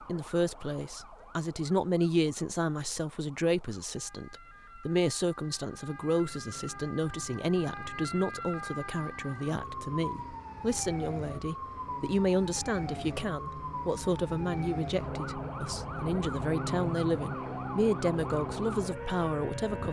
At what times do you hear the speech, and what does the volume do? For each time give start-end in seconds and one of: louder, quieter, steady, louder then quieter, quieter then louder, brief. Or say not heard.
0.1-19.8 steady.